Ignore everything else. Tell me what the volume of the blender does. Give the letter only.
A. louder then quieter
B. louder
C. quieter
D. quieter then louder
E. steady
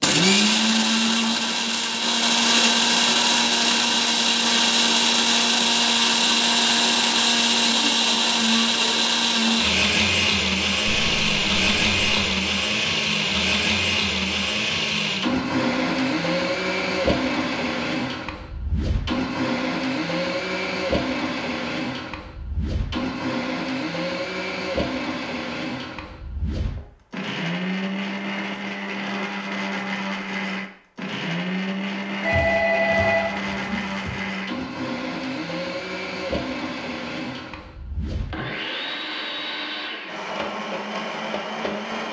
C.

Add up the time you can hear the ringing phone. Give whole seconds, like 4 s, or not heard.
3 s.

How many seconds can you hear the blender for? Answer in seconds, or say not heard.
42 s.